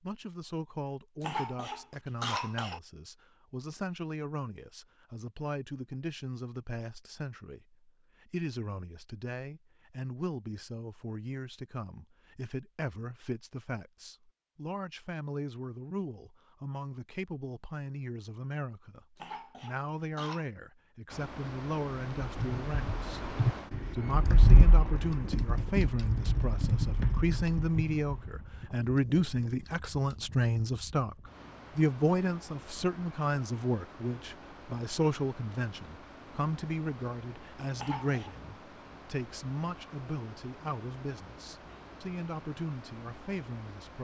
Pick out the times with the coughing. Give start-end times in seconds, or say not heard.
1.2-2.8, 19.1-20.4, 37.8-38.4.